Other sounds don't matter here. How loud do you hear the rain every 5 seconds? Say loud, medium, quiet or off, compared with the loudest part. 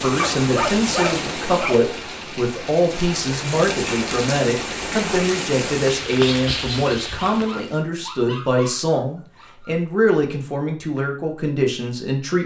loud, loud, off.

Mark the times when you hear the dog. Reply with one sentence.
The dog can be heard from 0.1 to 1.8 s and from 7.3 to 9.8 s.